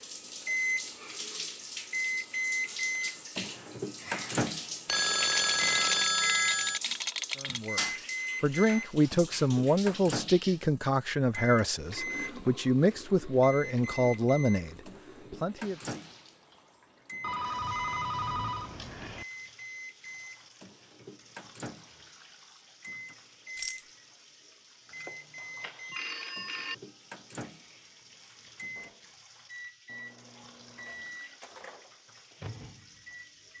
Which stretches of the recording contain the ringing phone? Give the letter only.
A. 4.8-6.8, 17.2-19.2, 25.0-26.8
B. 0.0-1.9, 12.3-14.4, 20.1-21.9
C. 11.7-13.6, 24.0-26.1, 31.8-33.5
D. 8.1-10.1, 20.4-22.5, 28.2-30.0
A.